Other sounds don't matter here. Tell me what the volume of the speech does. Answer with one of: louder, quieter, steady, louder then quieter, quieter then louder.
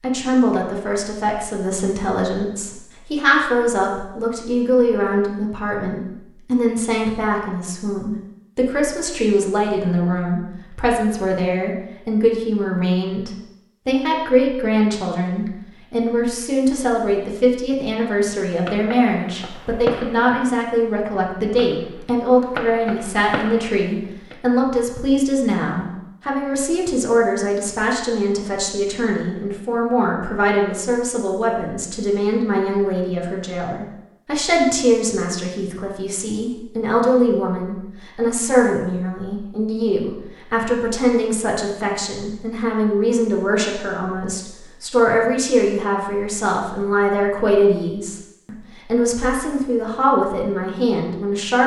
steady.